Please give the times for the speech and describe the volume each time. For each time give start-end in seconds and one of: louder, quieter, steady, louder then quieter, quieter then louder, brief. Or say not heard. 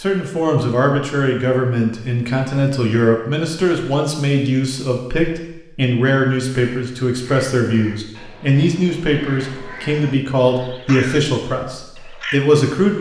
0.0-12.9 steady.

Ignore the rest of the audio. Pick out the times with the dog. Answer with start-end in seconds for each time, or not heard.
not heard.